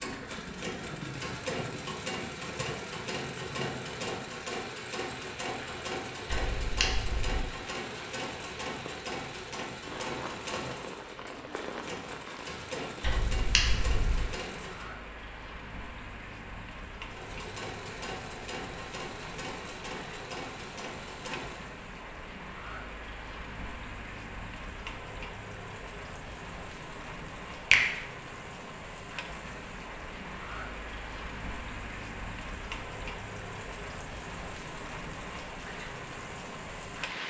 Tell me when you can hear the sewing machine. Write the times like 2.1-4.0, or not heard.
0.0-14.9, 17.1-21.7.